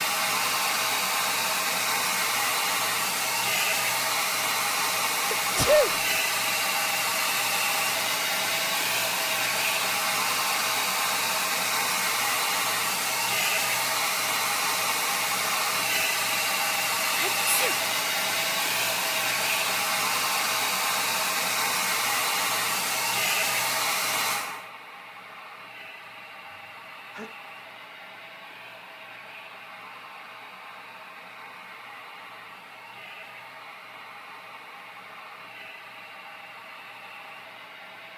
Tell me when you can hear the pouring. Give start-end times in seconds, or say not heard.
not heard.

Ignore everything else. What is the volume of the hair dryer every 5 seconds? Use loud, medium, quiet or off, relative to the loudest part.
loud, loud, loud, loud, loud, quiet, quiet, quiet.